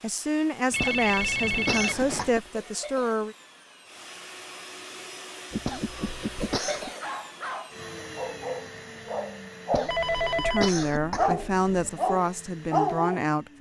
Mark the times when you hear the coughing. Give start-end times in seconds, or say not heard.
0.8-2.5, 5.7-6.9, 9.7-11.4.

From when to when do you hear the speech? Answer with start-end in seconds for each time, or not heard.
0.0-3.4, 10.3-13.5.